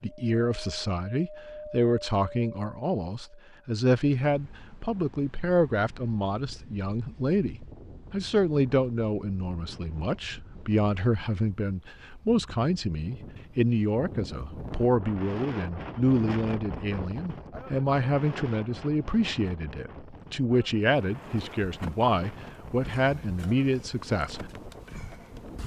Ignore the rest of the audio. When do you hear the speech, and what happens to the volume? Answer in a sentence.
The speech can be heard from 0.0 to 24.4 s, at a steady volume.